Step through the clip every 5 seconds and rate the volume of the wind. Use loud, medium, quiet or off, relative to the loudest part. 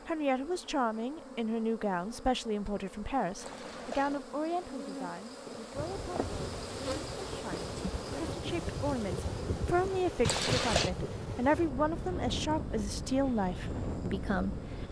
off, loud, loud.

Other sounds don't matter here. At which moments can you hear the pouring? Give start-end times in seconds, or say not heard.
3.4-4.2, 10.2-10.9.